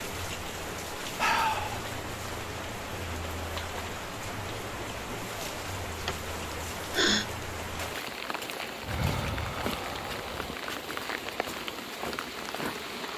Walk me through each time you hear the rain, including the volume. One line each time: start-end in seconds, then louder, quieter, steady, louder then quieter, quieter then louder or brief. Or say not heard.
0.0-13.1 steady.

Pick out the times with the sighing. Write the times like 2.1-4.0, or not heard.
1.1-1.9, 6.0-7.2, 8.8-10.6.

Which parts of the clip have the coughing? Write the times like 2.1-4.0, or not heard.
not heard.